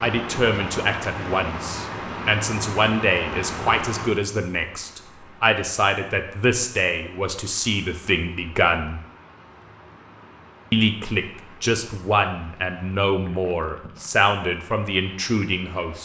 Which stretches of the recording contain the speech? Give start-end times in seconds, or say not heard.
0.0-9.0, 10.7-16.0.